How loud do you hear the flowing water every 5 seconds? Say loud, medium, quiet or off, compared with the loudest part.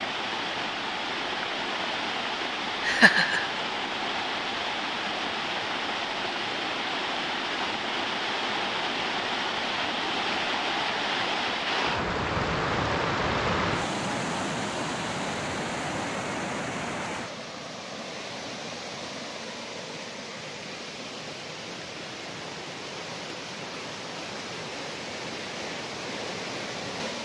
loud, loud, loud, medium, medium, medium.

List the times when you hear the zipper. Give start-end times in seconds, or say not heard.
not heard.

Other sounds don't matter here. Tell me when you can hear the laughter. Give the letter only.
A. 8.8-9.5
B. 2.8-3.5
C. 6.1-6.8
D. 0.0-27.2
B.